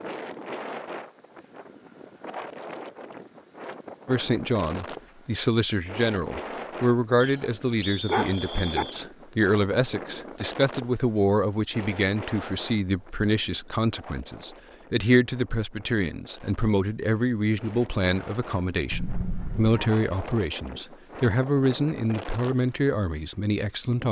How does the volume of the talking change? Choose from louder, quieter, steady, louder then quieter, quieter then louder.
steady.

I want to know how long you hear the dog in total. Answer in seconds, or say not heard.
2 s.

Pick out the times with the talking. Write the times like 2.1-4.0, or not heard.
4.0-24.0.